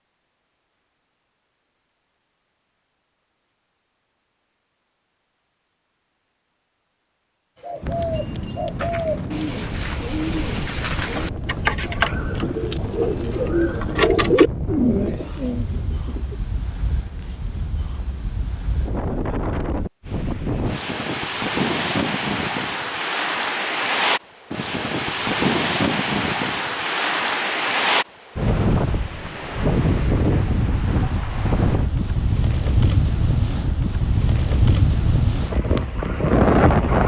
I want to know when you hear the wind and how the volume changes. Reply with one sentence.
You can hear the wind from 7.8 to 37.0 s, getting louder.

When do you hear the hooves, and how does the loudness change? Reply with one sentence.
The hooves can't be heard in this clip.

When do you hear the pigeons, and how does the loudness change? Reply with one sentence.
The pigeons can be heard from 7.6 to 16.4 s, getting louder.